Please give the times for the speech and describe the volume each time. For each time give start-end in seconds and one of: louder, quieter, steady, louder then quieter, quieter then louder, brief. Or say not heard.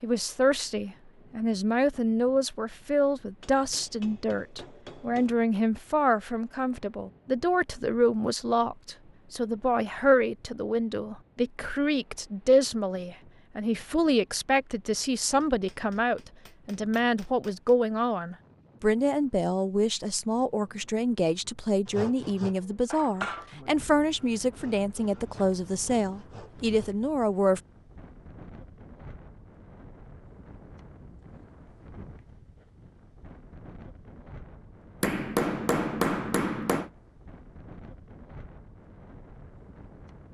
0.0-27.6 steady.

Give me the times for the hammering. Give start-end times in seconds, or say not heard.
3.4-5.3, 15.4-17.8, 35.0-36.9.